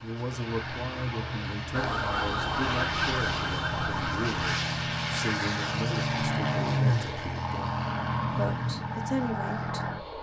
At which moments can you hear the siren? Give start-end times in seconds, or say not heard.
1.7-4.6.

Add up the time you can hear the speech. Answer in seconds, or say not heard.
10 s.